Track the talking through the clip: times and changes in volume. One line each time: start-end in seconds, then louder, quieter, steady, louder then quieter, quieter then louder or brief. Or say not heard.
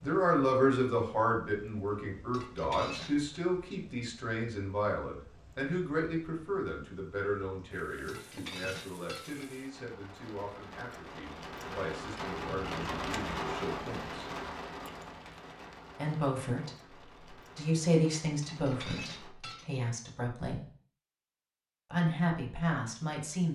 0.0-14.2 quieter
15.9-20.6 louder then quieter
21.9-23.4 brief.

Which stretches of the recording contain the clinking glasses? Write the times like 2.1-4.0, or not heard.
2.3-3.4, 8.1-9.6, 18.4-19.7.